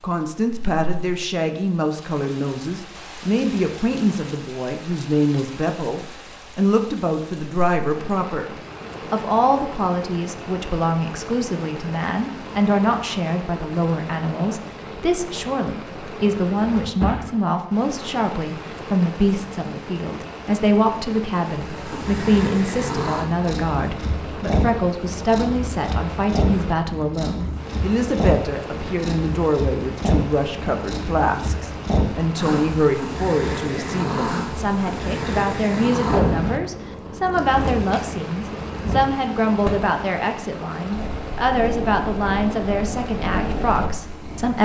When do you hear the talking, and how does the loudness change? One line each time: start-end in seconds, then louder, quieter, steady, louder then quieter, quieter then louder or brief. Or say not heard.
0.0-8.5 steady
9.1-44.6 steady.